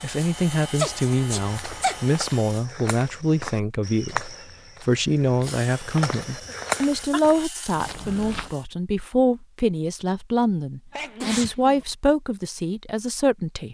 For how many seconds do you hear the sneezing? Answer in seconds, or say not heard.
3 s.